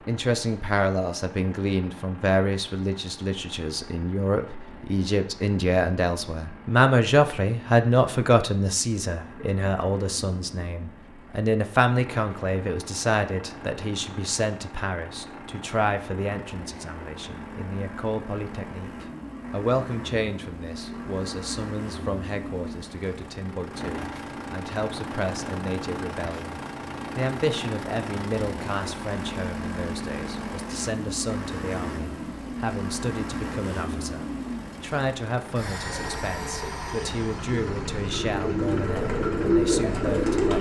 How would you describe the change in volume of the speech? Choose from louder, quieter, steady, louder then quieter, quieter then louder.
quieter.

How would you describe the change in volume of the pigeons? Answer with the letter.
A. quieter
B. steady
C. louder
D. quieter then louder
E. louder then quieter
C.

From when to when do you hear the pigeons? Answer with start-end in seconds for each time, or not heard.
35.8-40.5.